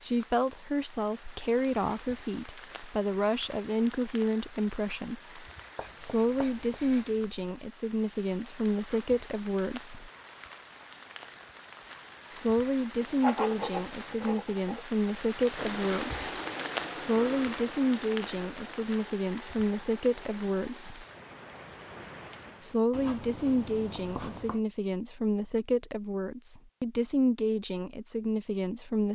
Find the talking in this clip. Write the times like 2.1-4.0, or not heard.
0.0-10.1, 12.3-16.2, 16.9-21.1, 22.6-29.1.